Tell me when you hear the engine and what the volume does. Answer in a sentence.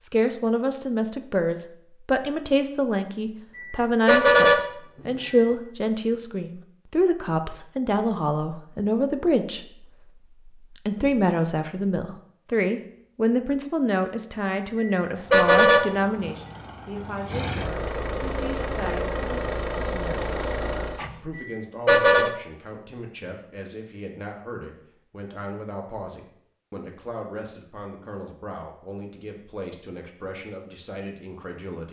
The engine can be heard from 15.1 to 21.2 s, getting louder.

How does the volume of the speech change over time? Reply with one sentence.
The volume of the speech goes down.